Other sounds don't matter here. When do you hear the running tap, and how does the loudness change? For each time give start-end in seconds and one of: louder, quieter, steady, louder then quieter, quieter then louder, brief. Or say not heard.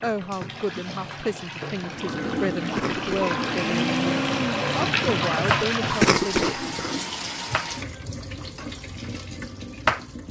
0.0-10.2 louder then quieter.